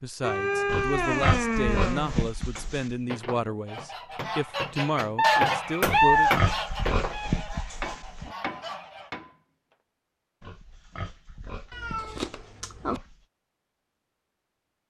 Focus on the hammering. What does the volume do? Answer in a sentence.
The volume of the hammering goes up, then down.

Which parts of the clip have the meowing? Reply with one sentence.
You can hear the meowing from 0.2 to 2.2 s, from 5.2 to 6.3 s and from 11.7 to 13.0 s.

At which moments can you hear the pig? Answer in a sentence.
You can hear the pig from 0.7 to 3.0 s, from 5.8 to 8.3 s and from 10.4 to 13.2 s.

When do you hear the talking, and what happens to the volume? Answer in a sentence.
The talking can be heard from 0.0 to 6.3 s, at a steady volume.